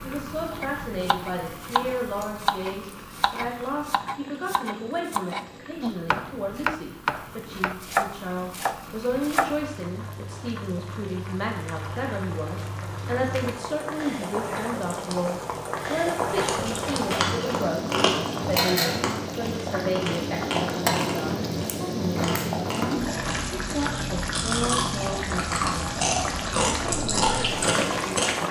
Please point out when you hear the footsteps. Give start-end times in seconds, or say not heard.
not heard.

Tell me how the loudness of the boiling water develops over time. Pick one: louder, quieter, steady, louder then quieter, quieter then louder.
louder.